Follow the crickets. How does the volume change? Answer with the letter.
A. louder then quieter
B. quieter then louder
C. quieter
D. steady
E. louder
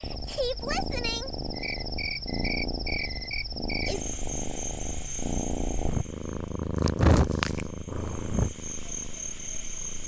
B.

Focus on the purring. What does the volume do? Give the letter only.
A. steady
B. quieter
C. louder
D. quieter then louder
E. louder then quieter
E.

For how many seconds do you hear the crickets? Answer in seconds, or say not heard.
10 s.